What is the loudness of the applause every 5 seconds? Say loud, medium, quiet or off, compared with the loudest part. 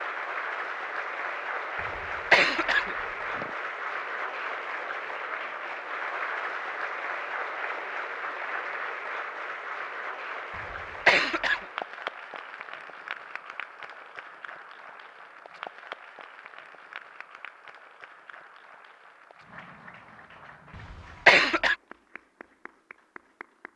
loud, loud, medium, quiet, quiet.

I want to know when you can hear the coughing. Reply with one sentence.
You can hear the coughing from 2.3 to 3.5 s, from 11.1 to 11.6 s and from 21.2 to 21.8 s.